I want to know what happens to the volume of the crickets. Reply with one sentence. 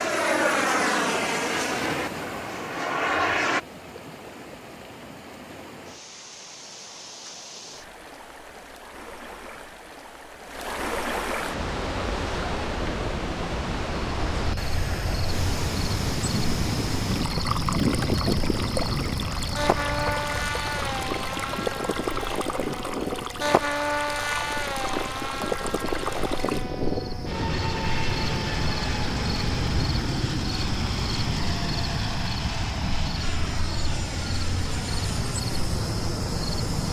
The volume of the crickets goes down, then up.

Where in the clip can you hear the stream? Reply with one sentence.
You can hear the stream from 0.0 to 26.6 s.